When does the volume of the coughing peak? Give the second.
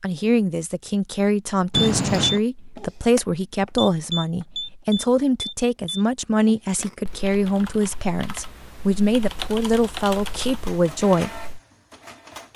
2 s.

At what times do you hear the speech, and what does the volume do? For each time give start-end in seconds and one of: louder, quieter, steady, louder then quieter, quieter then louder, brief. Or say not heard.
0.0-11.4 steady.